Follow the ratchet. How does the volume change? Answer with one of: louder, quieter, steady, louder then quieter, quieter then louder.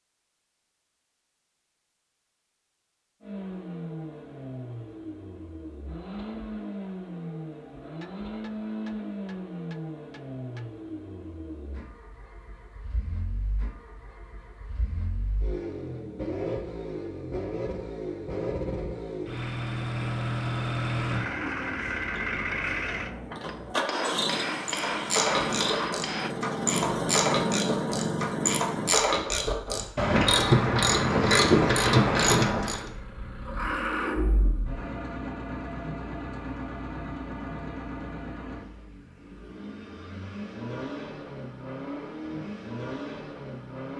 louder.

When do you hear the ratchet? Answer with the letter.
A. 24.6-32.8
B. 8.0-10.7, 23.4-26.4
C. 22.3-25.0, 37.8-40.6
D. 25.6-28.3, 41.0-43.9
A.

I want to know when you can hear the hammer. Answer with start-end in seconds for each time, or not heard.
8.0-10.7, 23.4-26.4.